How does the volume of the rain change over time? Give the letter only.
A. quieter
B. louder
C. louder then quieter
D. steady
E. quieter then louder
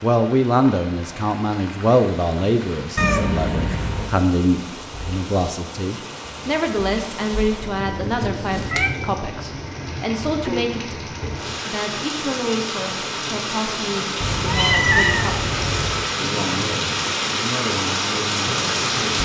B.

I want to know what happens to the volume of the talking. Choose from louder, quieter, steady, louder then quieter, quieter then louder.
quieter.